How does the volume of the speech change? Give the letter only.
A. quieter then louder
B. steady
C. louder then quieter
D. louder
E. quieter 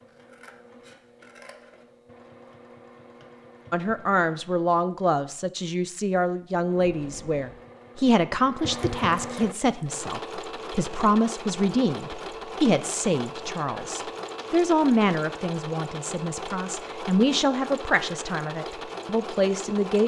B.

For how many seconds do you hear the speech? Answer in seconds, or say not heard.
16 s.